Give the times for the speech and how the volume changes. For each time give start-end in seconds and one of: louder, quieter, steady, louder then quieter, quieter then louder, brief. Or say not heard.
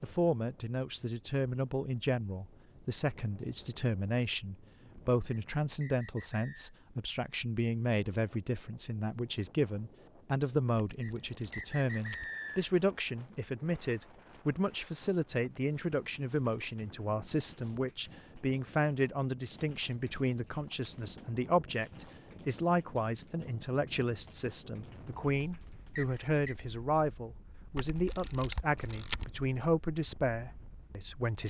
0.0-31.4 steady.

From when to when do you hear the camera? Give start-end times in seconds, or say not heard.
10.9-12.3, 27.8-29.2.